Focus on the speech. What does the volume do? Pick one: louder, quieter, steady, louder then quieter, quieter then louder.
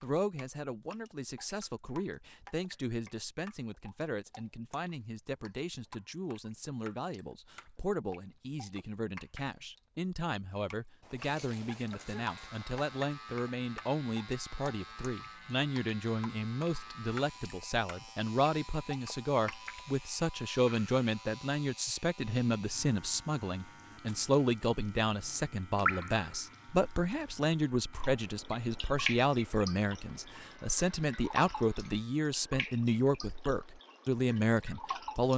louder.